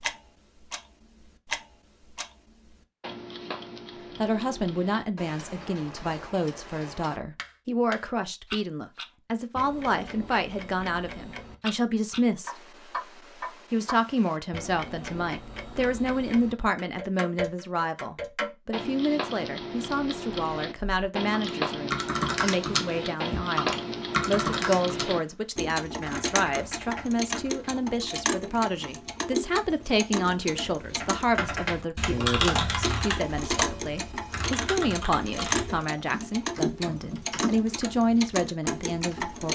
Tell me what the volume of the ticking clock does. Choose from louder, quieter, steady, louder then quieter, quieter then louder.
louder.